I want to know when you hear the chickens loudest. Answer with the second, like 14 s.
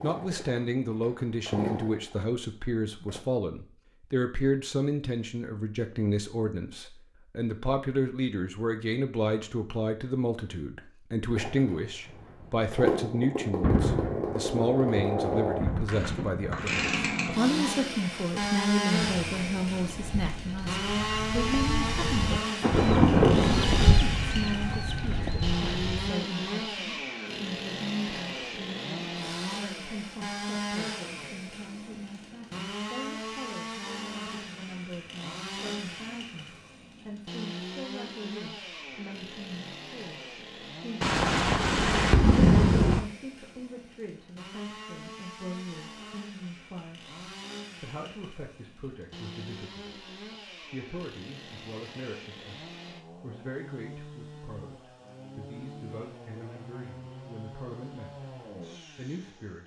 24 s.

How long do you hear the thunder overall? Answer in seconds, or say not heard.
7 s.